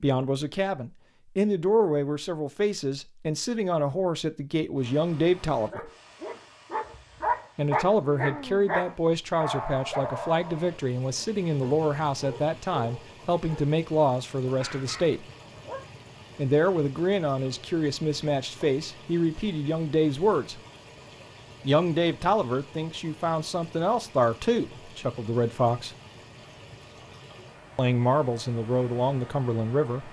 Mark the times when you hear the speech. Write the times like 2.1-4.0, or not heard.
0.0-5.9, 7.5-15.2, 16.4-20.6, 21.6-25.9, 27.8-30.0.